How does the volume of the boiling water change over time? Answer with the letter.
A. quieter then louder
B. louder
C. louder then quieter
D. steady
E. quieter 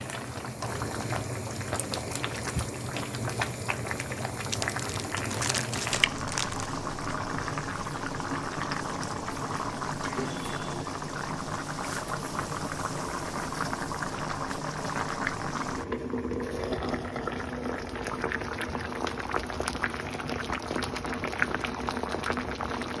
D.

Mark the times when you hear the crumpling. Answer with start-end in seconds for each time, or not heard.
4.5-6.7.